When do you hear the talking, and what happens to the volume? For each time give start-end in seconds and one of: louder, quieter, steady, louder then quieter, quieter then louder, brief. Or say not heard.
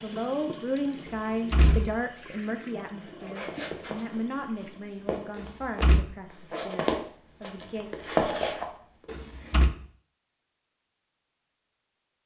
0.0-7.9 quieter.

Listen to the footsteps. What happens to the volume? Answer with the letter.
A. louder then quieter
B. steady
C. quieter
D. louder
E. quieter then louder
D.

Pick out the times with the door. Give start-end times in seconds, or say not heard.
1.1-2.0, 5.3-6.0, 9.1-9.7.